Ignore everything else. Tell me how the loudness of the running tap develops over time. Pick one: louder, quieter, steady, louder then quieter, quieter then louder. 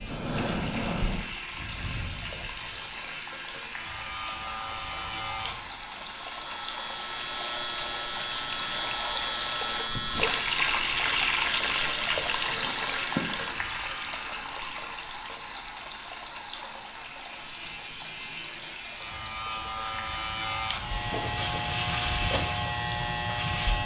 louder then quieter.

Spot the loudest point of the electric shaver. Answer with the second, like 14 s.
22 s.